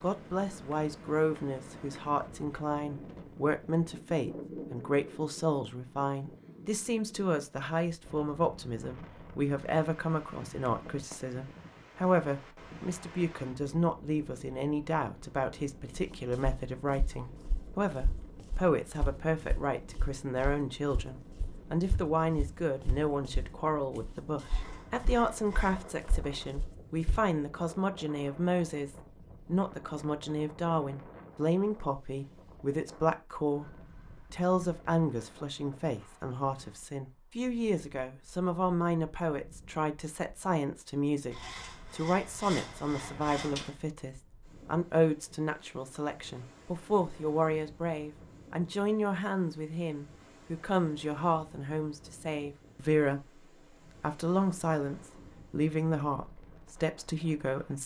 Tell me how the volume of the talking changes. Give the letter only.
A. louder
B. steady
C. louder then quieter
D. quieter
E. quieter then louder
B.